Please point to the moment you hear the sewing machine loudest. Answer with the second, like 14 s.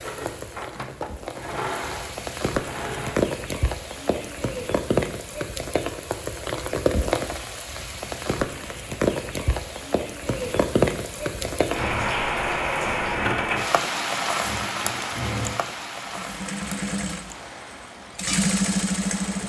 19 s.